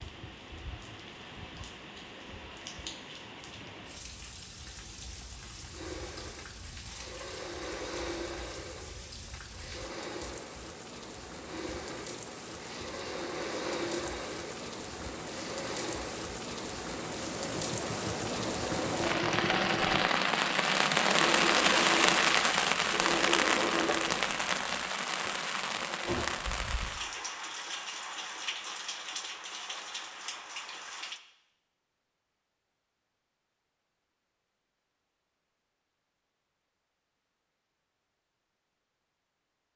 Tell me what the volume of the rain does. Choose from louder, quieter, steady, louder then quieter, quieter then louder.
louder then quieter.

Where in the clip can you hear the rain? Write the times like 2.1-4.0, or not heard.
0.0-31.2.